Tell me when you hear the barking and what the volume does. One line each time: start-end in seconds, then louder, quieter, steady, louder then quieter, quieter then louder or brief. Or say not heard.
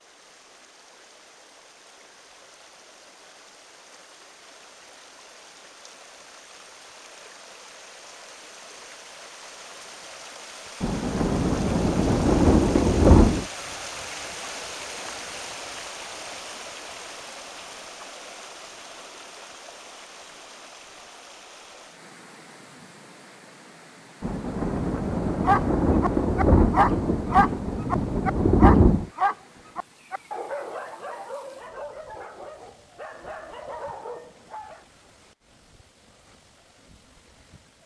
25.4-34.8 quieter.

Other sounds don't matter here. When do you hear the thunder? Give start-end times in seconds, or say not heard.
10.8-13.4, 24.2-29.1.